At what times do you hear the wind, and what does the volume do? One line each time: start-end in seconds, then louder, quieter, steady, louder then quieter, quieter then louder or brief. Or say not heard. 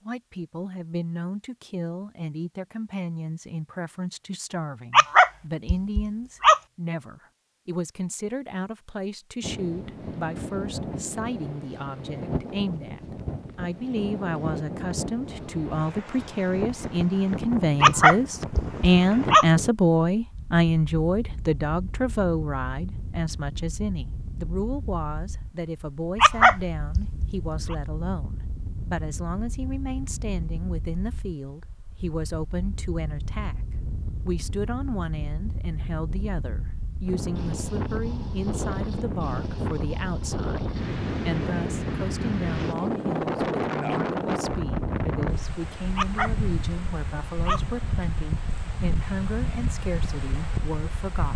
9.4-51.3 quieter then louder.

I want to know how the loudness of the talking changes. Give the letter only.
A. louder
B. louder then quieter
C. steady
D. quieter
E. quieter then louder
B.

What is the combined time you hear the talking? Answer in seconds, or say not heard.
51 s.